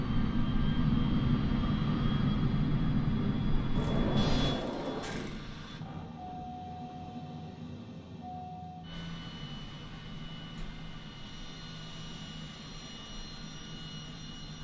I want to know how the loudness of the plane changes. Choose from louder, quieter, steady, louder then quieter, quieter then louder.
quieter.